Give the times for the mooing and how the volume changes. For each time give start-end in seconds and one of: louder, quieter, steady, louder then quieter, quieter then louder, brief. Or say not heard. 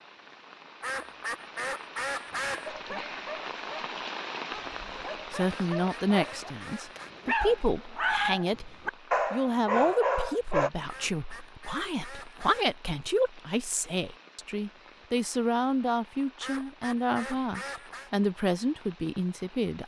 not heard.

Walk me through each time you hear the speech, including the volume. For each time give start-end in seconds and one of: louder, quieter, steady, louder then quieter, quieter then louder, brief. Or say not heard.
5.3-19.8 steady.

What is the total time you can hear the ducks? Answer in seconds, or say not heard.
7 s.